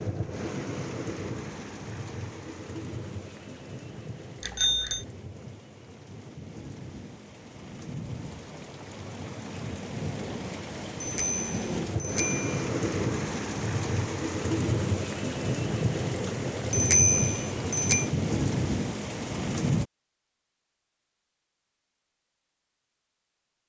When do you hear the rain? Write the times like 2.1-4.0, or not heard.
0.0-19.9.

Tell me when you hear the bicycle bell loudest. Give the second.
17 s.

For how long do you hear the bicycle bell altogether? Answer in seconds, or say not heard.
4 s.